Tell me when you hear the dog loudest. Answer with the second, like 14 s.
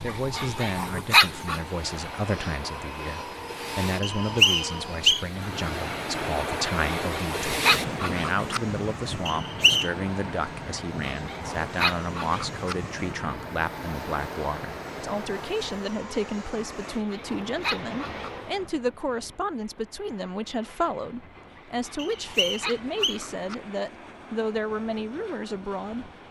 1 s.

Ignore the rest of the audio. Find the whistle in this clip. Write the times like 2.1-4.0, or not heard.
4.0-5.2, 9.2-9.9, 21.9-23.1.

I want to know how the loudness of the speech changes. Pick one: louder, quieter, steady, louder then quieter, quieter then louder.
steady.